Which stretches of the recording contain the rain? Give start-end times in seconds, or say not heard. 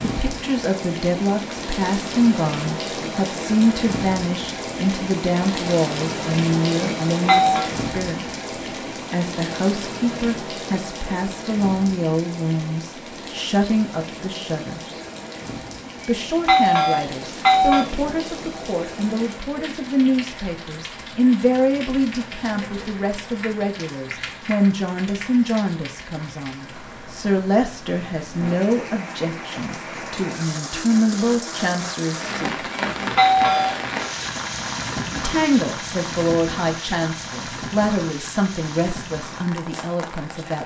0.0-40.6.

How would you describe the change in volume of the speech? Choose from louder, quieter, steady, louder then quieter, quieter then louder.
steady.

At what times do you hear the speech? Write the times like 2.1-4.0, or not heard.
0.0-8.2, 9.1-15.0, 16.1-32.7, 35.1-40.6.